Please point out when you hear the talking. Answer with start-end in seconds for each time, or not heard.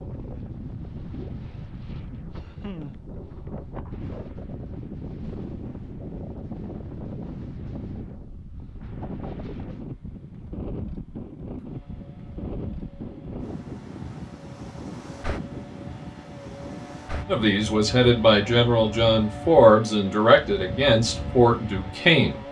17.2-22.4.